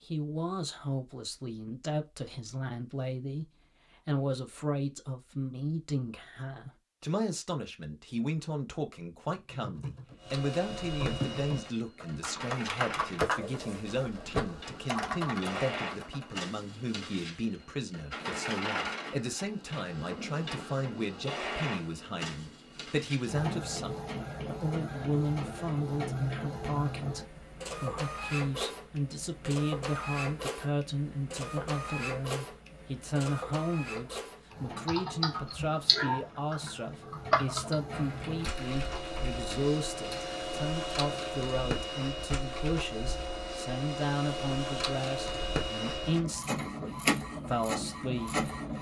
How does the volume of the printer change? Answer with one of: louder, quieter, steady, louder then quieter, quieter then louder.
louder.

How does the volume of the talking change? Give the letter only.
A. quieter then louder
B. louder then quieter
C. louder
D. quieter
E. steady
E.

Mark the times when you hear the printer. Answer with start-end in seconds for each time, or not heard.
10.2-48.7.